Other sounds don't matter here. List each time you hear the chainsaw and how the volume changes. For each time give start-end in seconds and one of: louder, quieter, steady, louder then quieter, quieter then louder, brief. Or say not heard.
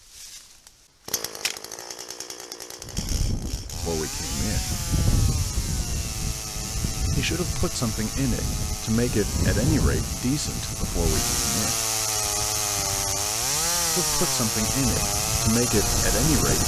0.0-16.6 louder.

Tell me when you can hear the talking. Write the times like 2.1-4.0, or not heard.
3.9-4.7, 7.2-11.8, 13.9-16.6.